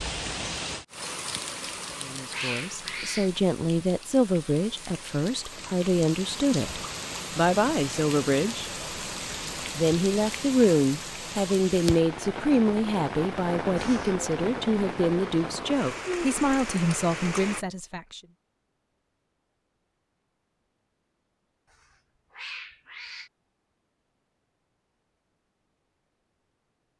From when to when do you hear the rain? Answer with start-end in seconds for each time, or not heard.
0.0-17.6.